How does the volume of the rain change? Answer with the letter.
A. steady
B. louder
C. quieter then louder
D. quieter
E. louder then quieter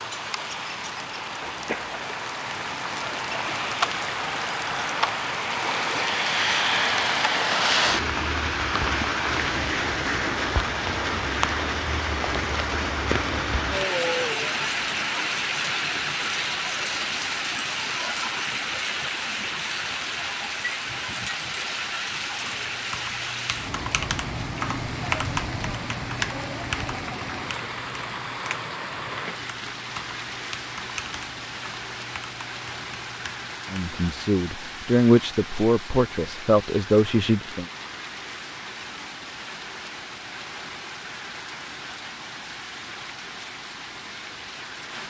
D.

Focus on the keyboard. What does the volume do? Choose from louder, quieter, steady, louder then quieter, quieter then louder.
louder then quieter.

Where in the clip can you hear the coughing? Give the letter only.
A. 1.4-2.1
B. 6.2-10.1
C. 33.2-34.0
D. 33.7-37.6
A.